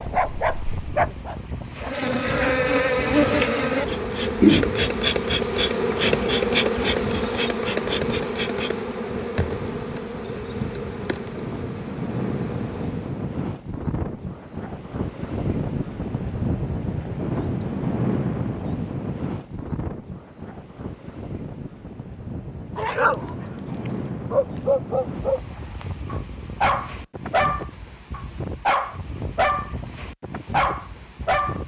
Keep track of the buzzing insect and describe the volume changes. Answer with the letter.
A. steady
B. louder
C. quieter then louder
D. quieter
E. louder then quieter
D.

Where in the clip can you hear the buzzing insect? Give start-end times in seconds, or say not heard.
1.8-13.3.